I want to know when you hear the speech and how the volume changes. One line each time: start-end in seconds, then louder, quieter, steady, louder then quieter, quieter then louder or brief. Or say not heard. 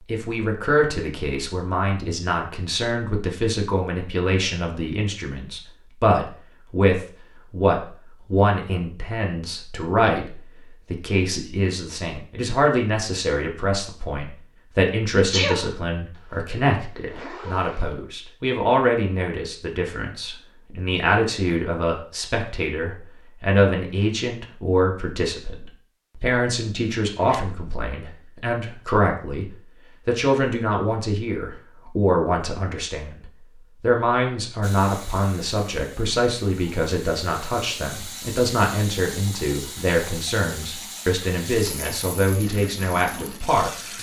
0.0-43.7 steady.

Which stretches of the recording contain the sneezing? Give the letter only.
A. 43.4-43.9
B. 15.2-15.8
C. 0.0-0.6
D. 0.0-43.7
B.